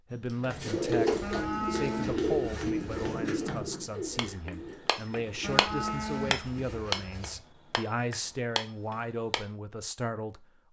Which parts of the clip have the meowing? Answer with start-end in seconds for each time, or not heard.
not heard.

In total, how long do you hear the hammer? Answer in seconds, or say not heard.
9 s.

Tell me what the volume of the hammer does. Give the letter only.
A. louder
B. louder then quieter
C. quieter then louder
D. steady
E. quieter
A.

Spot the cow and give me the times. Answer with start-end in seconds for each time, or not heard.
1.2-3.1, 5.4-7.4.